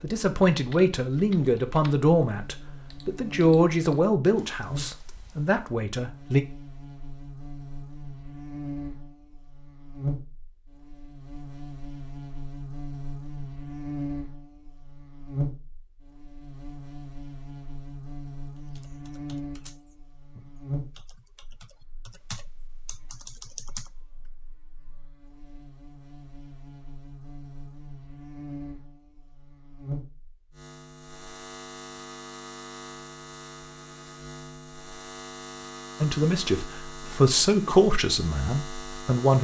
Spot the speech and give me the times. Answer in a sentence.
The speech can be heard from 0.0 to 6.5 s and from 36.0 to 39.3 s.